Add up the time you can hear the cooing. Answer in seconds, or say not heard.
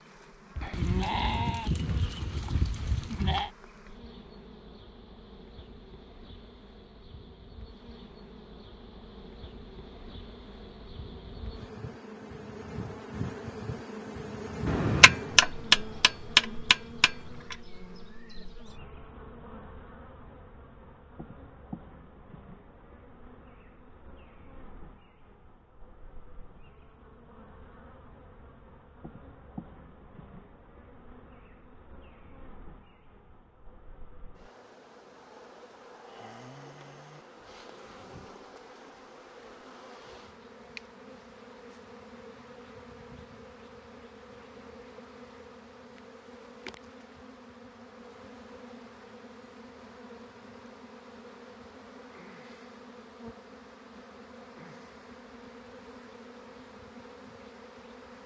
not heard.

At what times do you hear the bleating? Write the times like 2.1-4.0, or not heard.
0.6-3.5.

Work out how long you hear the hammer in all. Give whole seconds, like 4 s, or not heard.
3 s.